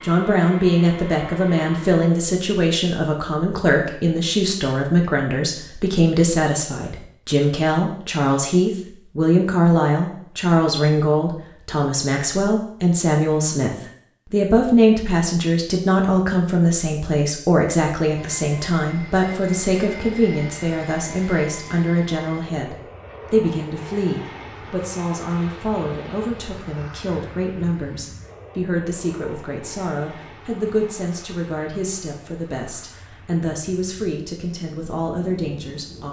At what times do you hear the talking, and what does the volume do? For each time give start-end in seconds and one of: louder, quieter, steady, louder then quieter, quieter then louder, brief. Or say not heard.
0.0-36.0 quieter.